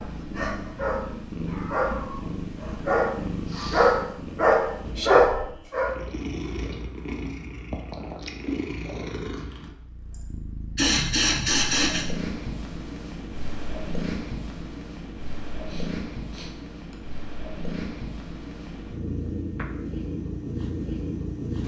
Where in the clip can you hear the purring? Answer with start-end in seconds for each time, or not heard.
0.0-21.6.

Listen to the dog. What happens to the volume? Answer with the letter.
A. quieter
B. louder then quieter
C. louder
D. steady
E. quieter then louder
C.